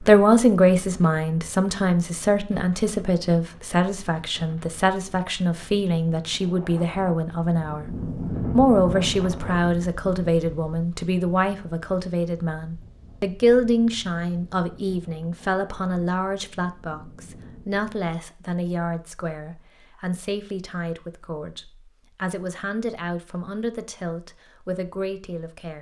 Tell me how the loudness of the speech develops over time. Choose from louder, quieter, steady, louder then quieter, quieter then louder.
quieter.